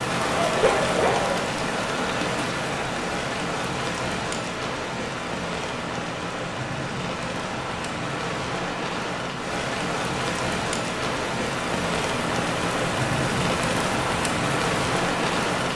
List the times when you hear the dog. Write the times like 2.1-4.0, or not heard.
0.2-1.4.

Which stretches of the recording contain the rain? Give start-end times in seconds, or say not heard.
0.0-15.7.